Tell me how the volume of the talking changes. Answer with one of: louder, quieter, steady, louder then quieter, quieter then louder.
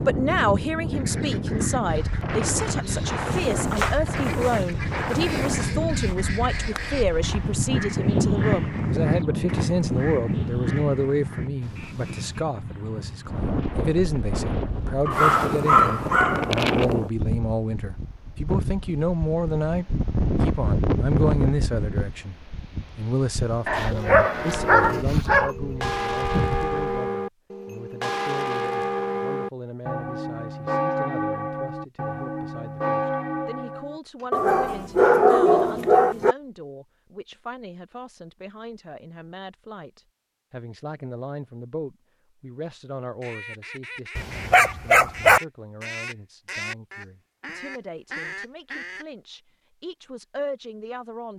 quieter.